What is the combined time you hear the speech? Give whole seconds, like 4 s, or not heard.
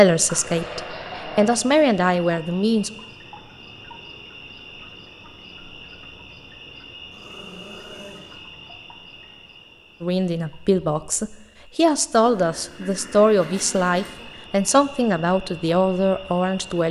10 s.